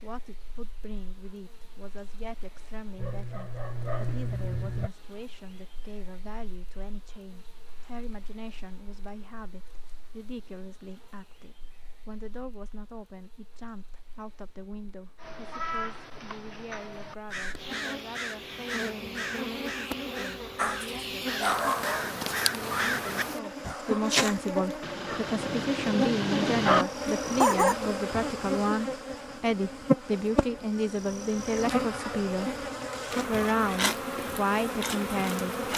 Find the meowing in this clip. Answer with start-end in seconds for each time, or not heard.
not heard.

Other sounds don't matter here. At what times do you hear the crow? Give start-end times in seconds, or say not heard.
15.2-23.8.